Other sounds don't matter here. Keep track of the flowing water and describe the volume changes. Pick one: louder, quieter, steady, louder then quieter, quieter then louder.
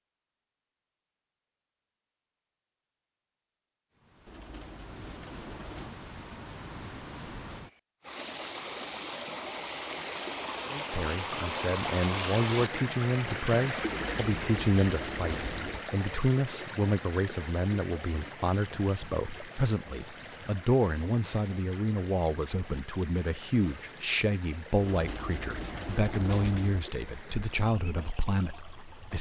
louder then quieter.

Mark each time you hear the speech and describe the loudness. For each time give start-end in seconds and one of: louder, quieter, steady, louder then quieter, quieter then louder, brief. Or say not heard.
10.7-29.1 steady.